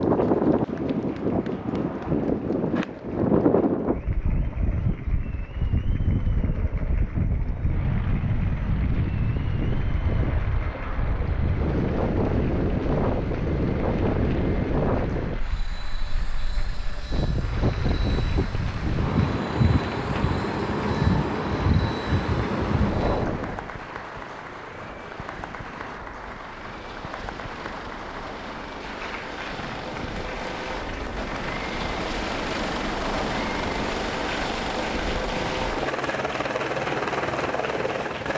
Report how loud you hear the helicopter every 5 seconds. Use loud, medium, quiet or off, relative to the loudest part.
quiet, quiet, quiet, quiet, quiet, medium, loud, loud.